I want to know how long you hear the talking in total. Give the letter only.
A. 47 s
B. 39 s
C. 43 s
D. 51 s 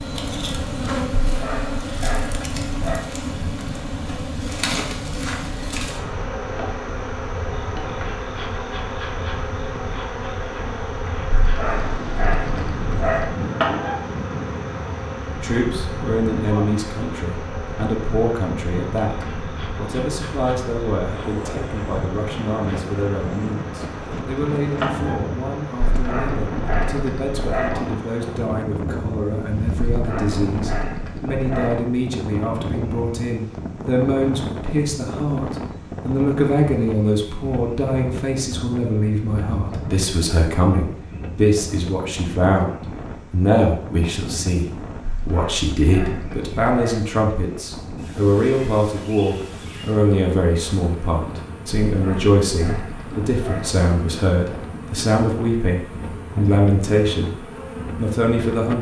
C.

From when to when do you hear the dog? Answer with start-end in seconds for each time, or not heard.
1.2-3.1, 11.3-13.3, 25.9-27.8, 29.9-31.8, 45.0-47.0, 51.9-53.8.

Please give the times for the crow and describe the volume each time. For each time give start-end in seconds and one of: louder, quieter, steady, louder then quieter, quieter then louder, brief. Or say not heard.
not heard.